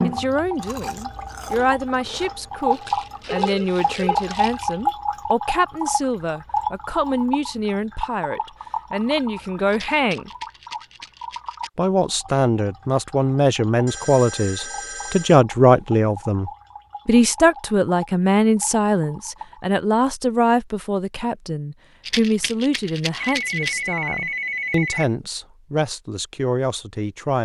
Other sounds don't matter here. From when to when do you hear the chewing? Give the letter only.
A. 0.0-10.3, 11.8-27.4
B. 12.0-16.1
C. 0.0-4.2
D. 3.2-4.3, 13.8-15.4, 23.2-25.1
C.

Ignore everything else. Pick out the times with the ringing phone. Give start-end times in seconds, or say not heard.
3.2-4.3, 13.8-15.4, 23.2-25.1.